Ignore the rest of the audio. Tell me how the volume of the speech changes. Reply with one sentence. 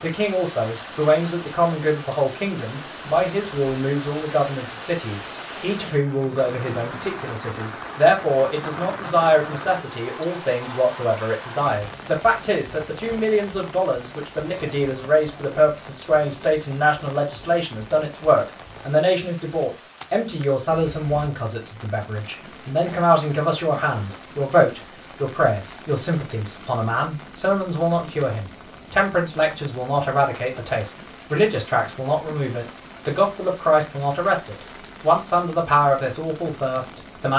The volume of the speech stays about the same.